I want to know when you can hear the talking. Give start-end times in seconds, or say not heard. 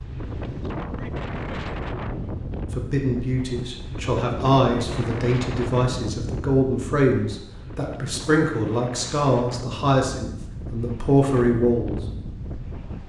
2.8-12.0.